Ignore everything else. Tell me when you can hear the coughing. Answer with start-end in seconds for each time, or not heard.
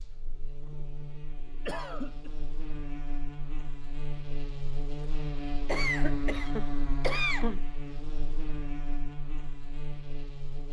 1.6-2.3, 5.7-7.6.